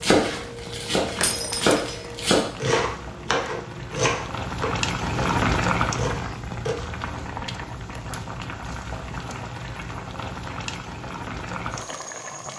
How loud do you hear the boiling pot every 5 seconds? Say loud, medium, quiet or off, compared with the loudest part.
medium, loud, medium.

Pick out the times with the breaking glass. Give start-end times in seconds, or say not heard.
1.2-2.0.